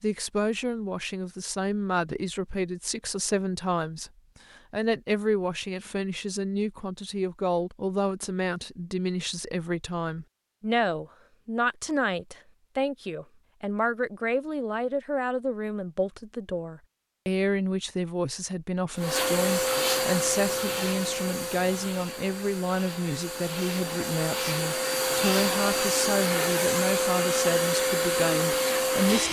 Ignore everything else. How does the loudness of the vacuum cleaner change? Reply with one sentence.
The loudness of the vacuum cleaner goes down, then up.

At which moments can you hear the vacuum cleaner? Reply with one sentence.
The vacuum cleaner can be heard from 18.9 to 29.2 s.